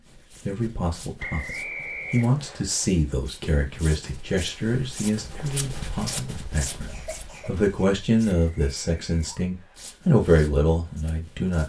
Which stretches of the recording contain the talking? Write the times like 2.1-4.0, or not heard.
0.5-11.6.